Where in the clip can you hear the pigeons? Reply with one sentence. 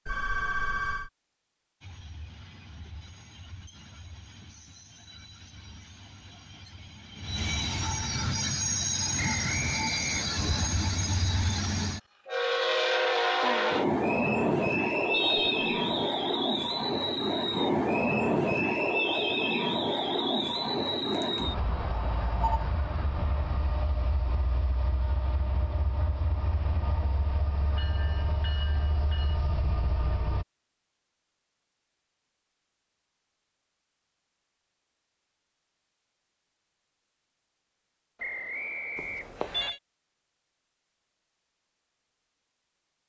You can't hear the pigeons here.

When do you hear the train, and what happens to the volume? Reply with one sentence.
You can hear the train from 1.8 to 30.4 s, getting louder then quieter.